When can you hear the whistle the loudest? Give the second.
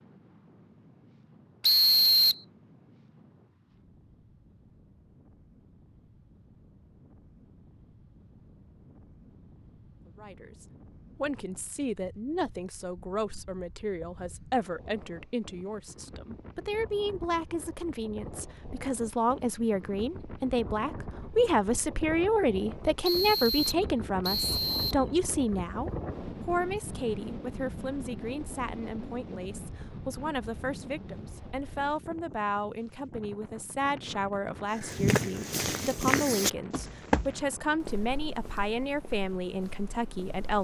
2 s.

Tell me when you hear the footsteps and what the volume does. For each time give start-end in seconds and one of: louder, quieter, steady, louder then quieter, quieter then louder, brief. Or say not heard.
34.7-40.5 quieter.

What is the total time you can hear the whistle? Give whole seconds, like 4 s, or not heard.
3 s.